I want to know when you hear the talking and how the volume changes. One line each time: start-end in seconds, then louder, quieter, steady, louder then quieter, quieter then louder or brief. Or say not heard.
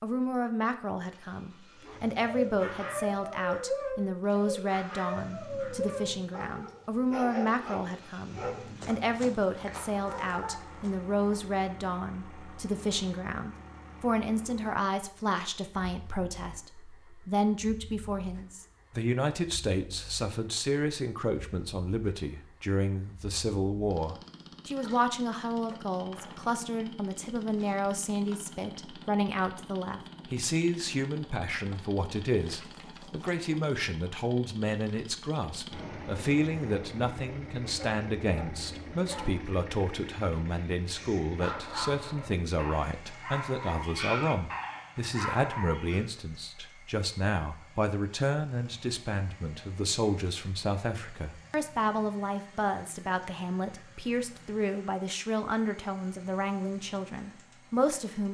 0.0-58.2 steady.